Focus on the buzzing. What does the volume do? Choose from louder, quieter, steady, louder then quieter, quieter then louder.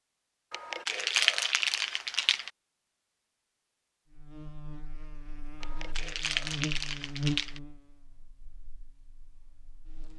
louder then quieter.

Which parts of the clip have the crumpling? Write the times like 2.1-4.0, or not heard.
0.5-2.5, 5.6-7.6.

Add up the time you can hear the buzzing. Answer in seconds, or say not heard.
6 s.